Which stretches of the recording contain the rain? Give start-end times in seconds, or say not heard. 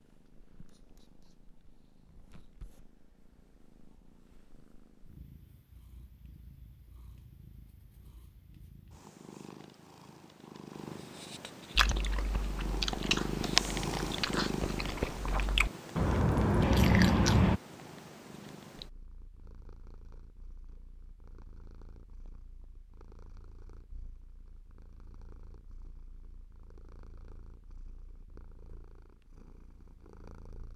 not heard.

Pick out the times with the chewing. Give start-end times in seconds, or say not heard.
11.8-17.6.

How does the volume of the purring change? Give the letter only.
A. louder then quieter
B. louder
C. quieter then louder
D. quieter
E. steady
A.